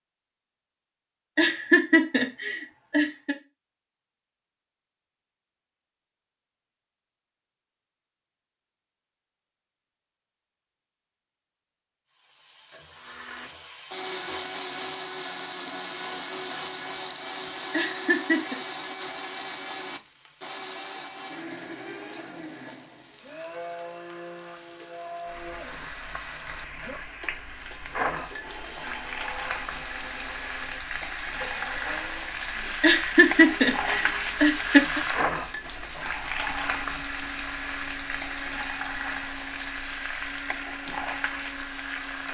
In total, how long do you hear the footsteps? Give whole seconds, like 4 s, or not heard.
not heard.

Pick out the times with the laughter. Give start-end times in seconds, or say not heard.
1.4-3.4, 17.7-18.6, 32.8-35.0.